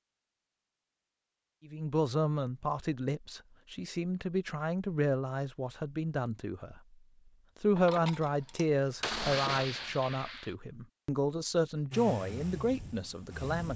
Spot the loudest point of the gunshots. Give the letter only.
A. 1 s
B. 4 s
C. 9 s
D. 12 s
C.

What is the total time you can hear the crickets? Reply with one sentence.
You can't hear the crickets here.